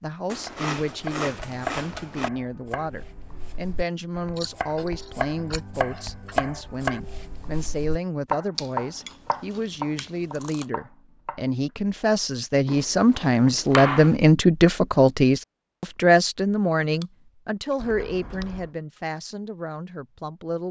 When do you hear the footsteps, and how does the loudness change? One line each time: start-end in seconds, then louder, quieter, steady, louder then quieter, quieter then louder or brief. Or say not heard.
not heard.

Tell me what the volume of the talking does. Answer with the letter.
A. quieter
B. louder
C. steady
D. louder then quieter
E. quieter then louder
D.